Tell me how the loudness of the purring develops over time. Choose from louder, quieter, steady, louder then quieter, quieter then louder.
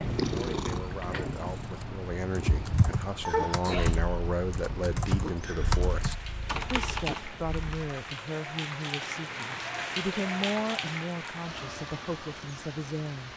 quieter.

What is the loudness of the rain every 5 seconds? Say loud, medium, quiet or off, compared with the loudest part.
medium, loud, loud.